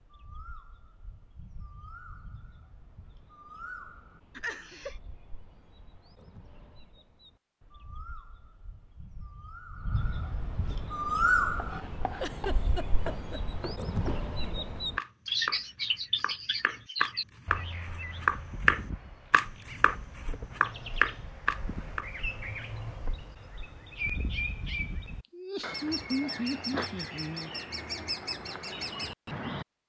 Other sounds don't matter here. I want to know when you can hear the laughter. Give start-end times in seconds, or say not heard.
4.3-5.0, 12.2-13.4, 25.3-27.5.